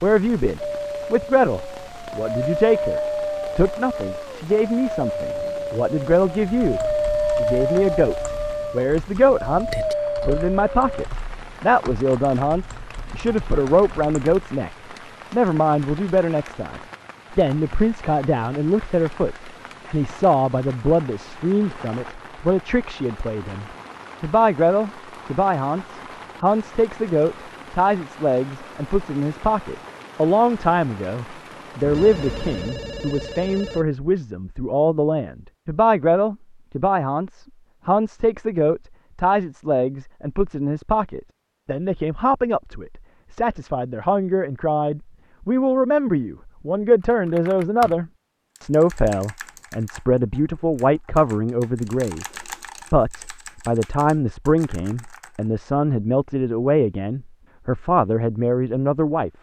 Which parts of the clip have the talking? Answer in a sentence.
The talking can be heard from 0.0 to 52.2 s and from 52.9 to 59.3 s.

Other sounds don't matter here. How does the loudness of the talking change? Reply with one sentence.
The volume of the talking stays about the same.